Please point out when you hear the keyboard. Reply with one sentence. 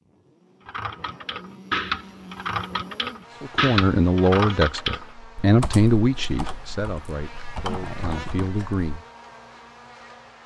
You can hear the keyboard from 0.7 to 8.8 s.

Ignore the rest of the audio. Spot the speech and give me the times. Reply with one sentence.
You can hear the speech from 3.4 to 9.0 s.